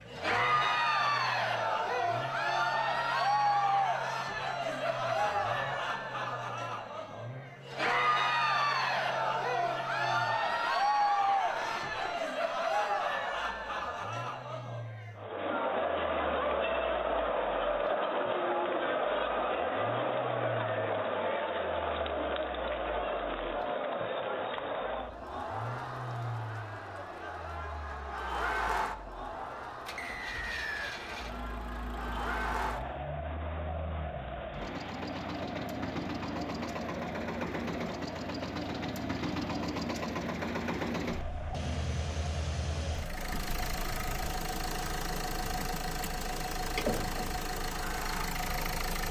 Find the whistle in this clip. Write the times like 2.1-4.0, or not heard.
29.9-31.0.